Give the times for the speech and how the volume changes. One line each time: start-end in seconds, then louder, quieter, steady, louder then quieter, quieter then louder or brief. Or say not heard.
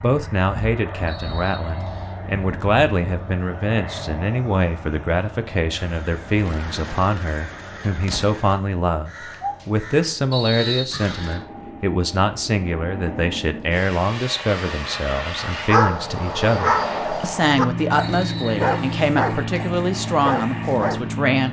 0.0-21.4 steady.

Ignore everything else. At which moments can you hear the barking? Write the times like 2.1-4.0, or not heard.
15.7-21.0.